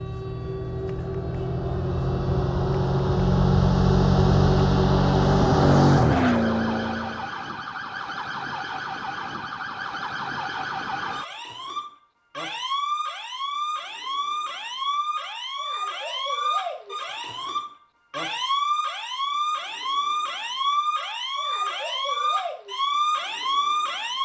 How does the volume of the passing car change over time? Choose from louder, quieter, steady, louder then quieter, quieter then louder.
louder.